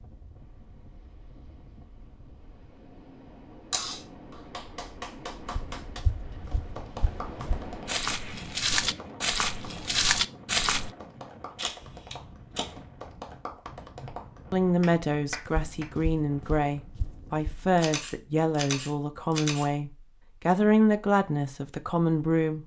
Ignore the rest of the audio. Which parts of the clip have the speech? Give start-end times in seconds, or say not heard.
14.0-22.6.